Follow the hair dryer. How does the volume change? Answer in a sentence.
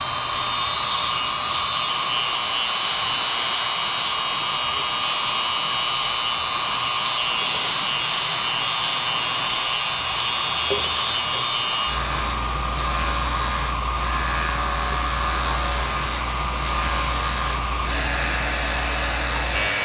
The loudness of the hair dryer stays about the same.